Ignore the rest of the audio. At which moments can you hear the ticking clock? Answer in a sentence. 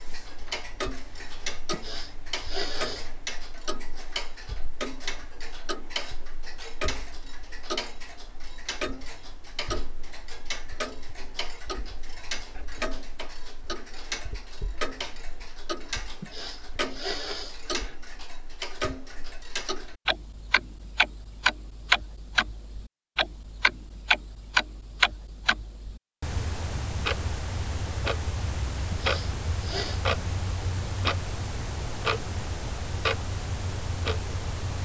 The ticking clock can be heard from 0.0 to 34.8 s.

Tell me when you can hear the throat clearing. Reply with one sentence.
The throat clearing can be heard from 1.7 to 3.2 s, from 16.2 to 17.9 s and from 28.9 to 30.0 s.